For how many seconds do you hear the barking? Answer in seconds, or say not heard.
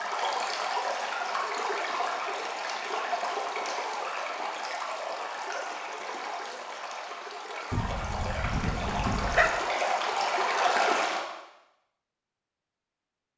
2 s.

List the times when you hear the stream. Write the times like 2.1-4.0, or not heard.
0.0-11.2.